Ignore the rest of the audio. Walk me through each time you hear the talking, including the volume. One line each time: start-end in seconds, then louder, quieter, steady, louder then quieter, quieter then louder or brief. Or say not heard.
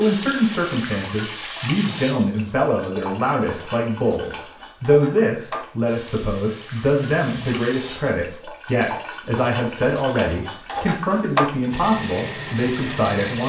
0.0-13.4 steady.